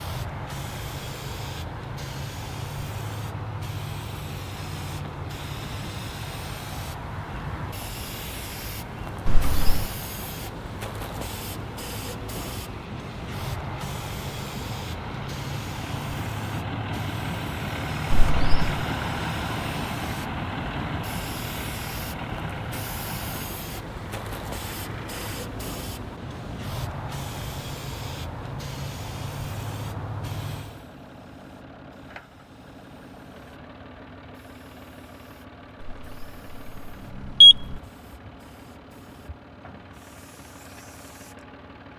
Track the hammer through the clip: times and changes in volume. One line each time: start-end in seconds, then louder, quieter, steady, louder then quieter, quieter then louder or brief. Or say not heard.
not heard.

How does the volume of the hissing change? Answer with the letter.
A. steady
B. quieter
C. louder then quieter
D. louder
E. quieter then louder
B.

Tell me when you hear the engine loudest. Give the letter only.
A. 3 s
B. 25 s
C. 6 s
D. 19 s
D.